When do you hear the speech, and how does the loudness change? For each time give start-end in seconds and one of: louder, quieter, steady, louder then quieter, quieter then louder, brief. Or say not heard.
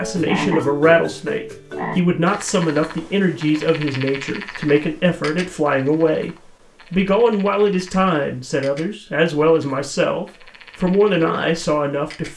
0.0-12.3 steady.